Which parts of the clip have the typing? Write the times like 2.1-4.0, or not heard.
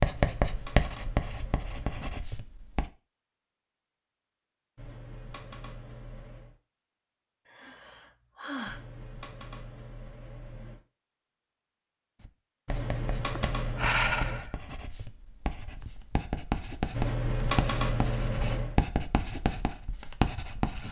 0.1-2.1, 4.8-6.5, 8.7-10.8, 12.7-14.4, 16.9-18.8.